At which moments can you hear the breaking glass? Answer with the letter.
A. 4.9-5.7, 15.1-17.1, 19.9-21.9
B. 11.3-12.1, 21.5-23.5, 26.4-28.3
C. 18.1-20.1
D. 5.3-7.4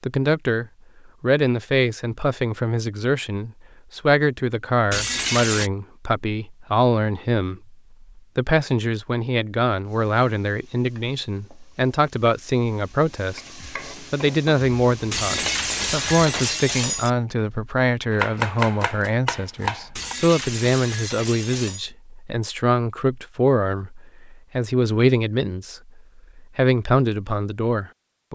A.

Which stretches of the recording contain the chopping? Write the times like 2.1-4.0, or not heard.
18.1-20.1.